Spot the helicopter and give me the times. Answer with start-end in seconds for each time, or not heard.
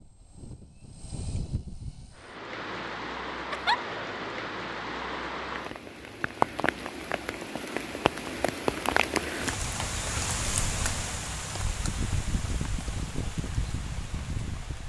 0.0-2.3.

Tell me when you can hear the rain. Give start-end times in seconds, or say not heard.
2.1-14.8.